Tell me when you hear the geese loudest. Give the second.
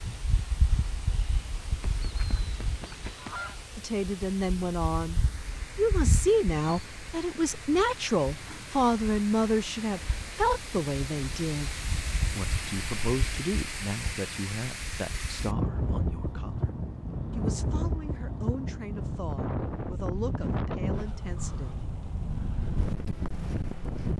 3 s.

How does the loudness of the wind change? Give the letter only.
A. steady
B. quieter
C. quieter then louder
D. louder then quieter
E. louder
E.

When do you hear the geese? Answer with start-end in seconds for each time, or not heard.
1.8-3.6.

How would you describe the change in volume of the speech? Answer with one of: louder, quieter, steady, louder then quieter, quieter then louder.
quieter.